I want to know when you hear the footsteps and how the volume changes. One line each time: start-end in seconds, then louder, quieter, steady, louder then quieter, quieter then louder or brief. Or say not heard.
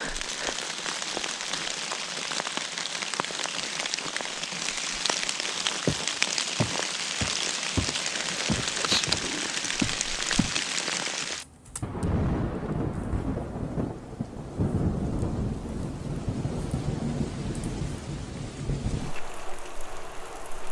5.6-10.6 louder.